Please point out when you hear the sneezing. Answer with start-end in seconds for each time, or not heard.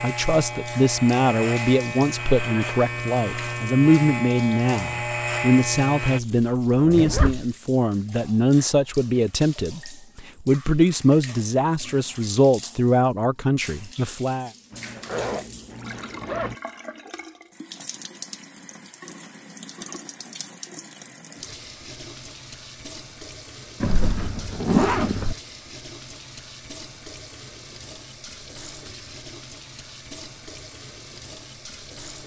not heard.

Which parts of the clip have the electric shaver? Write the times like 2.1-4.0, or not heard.
0.0-6.2.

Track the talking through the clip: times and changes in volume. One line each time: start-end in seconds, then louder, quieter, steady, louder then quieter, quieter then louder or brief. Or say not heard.
0.0-14.5 steady.